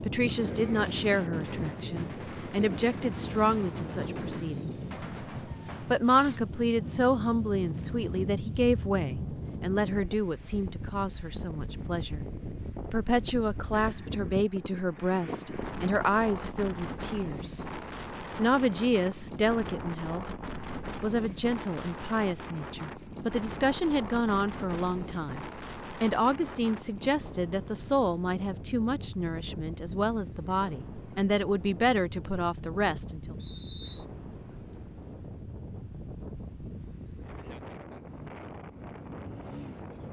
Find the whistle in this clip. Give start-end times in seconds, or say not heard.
33.4-34.0.